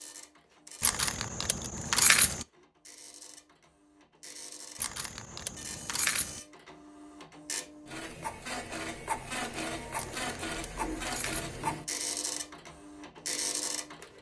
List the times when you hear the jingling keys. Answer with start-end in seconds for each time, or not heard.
0.8-2.5, 4.8-6.4, 9.9-11.6.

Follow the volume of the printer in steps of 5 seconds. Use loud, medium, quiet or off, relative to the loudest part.
quiet, loud, loud.